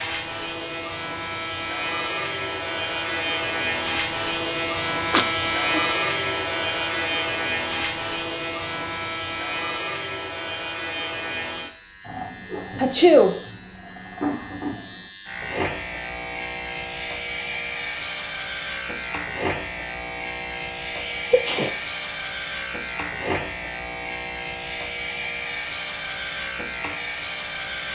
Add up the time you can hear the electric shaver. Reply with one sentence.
The electric shaver can be heard for 28 seconds in total.